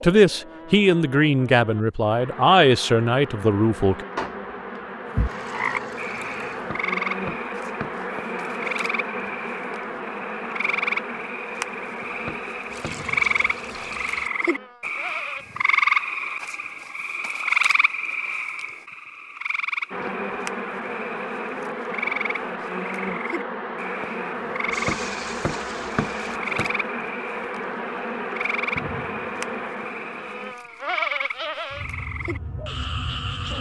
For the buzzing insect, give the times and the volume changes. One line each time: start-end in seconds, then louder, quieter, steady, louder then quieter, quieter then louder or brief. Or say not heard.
0.0-15.4 louder then quieter
19.9-33.5 steady.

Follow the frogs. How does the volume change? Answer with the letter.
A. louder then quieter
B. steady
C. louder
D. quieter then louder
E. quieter
A.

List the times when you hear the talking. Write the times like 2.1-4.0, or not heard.
0.0-4.0.